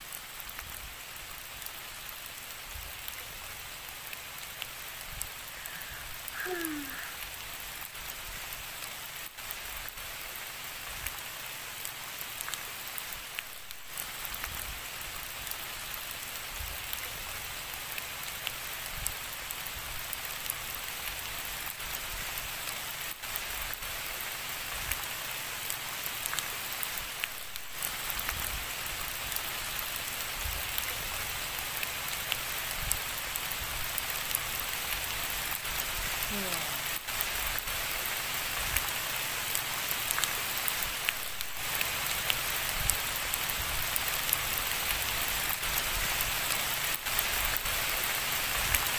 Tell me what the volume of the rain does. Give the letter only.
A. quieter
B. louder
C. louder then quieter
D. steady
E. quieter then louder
B.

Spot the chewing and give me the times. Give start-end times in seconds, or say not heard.
not heard.